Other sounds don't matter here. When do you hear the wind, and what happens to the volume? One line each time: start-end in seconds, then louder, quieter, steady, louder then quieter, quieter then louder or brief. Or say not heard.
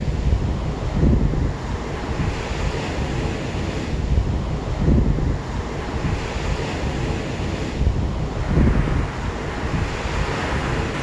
0.0-10.9 steady.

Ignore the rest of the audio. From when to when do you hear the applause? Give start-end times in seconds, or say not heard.
8.3-10.9.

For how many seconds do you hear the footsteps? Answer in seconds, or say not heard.
not heard.